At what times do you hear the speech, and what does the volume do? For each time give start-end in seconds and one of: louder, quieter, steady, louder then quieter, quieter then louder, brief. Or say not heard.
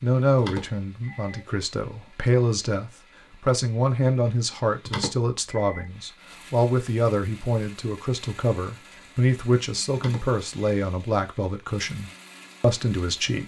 0.0-13.4 steady.